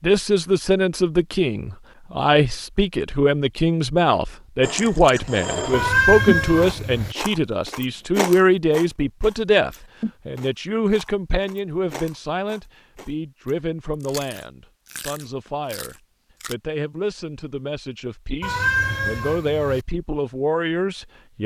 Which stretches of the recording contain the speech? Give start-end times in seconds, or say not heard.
0.0-21.4.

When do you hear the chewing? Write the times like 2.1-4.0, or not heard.
4.6-16.6.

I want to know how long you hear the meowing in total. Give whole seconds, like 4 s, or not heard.
3 s.